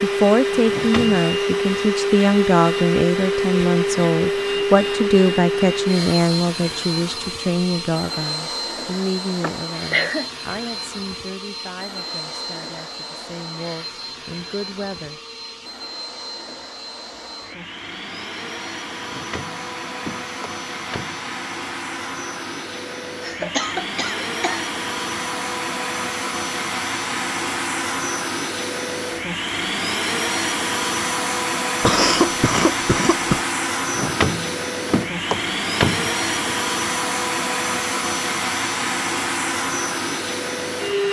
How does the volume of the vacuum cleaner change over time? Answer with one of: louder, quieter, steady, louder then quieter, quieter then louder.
quieter then louder.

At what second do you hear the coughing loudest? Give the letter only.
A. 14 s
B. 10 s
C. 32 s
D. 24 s
C.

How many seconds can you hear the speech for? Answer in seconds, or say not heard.
15 s.